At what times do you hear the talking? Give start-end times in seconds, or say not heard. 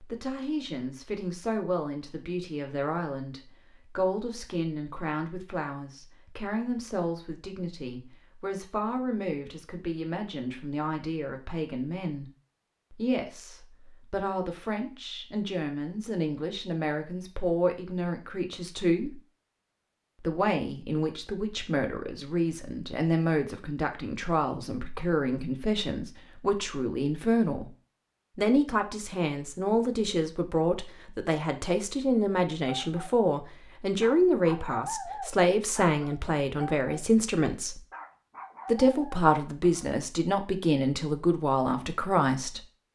0.0-12.3, 12.9-19.2, 20.2-27.7, 28.4-37.8, 38.6-42.6.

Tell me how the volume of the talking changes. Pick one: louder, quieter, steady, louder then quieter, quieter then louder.
louder.